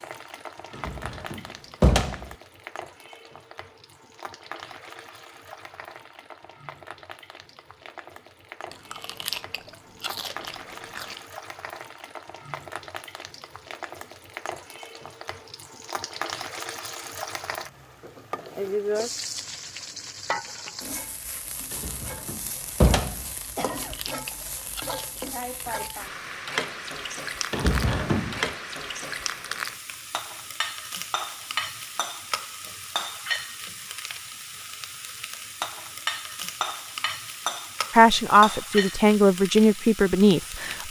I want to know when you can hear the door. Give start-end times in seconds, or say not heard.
0.8-2.2, 21.7-23.2, 27.5-28.6.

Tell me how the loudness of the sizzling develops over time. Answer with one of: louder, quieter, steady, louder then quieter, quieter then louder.
louder.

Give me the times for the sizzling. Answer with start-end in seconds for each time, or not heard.
0.0-40.8.